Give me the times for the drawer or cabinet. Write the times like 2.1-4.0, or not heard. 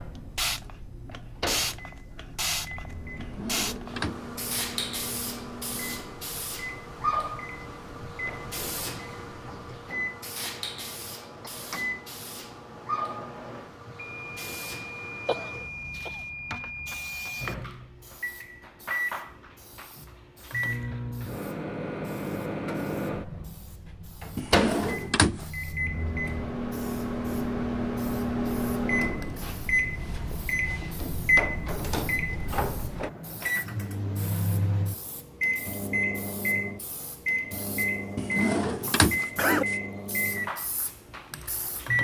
3.1-4.3, 24.4-25.4, 38.1-39.8.